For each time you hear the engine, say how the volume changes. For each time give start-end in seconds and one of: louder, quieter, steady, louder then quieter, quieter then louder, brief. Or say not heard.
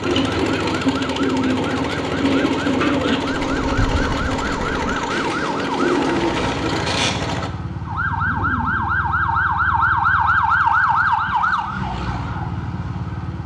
0.0-7.5 steady.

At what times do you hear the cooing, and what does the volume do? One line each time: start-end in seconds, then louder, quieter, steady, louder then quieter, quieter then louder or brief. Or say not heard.
0.0-7.1 quieter then louder.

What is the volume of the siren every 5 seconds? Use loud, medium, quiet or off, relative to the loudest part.
medium, loud, loud.